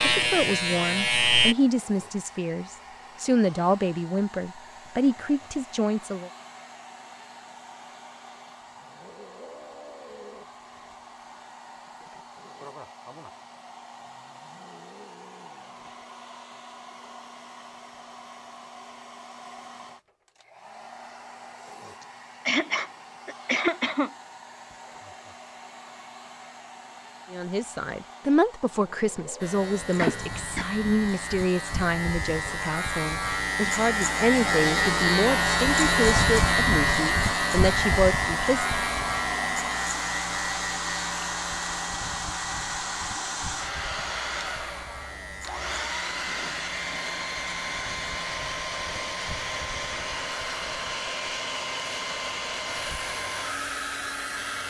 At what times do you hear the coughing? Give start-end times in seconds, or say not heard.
22.0-24.1, 29.9-30.7.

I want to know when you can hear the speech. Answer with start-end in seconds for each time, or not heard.
0.0-6.3, 27.3-38.8.